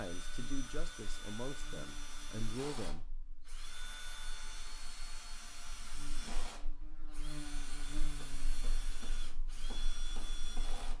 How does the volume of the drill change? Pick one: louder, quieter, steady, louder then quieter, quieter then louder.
steady.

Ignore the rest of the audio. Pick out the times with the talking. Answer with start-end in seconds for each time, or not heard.
0.0-3.1.